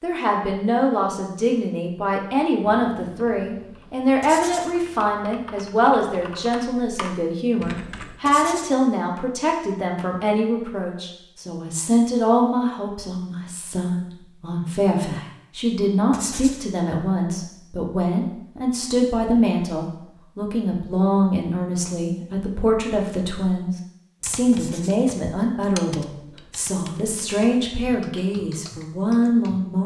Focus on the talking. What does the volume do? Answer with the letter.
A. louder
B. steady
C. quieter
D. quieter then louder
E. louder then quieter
B.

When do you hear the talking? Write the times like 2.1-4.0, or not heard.
0.0-29.8.